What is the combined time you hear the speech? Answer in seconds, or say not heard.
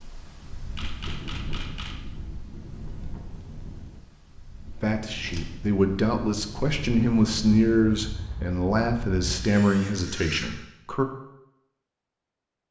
6 s.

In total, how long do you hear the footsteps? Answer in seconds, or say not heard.
not heard.